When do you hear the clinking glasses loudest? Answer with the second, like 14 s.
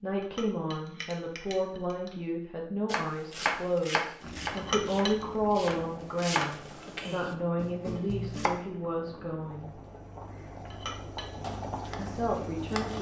5 s.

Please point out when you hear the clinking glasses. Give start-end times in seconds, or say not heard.
0.2-2.1, 4.5-5.2, 10.7-11.3.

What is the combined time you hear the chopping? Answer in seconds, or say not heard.
7 s.